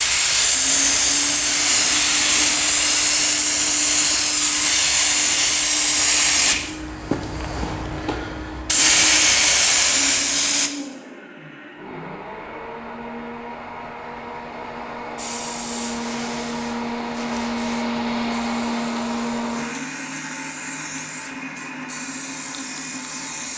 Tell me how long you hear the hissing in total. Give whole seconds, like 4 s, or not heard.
19 s.